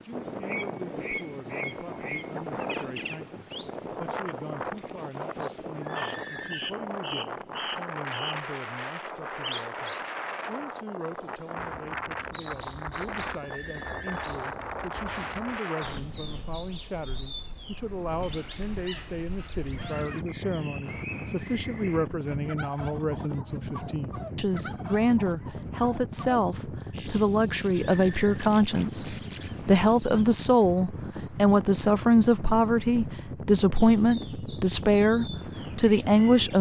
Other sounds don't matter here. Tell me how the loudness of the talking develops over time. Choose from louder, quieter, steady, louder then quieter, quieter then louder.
louder.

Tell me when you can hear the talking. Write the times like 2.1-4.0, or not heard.
0.0-36.5.